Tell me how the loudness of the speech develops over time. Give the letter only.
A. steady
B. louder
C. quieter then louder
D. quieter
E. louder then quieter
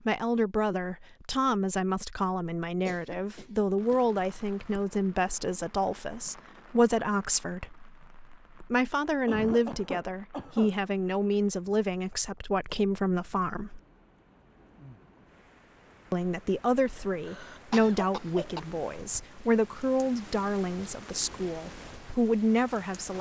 A.